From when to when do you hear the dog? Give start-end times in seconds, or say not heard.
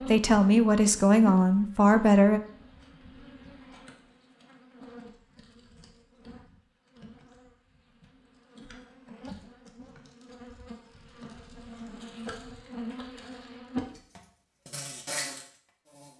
not heard.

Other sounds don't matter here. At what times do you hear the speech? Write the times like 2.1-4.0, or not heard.
0.0-2.4.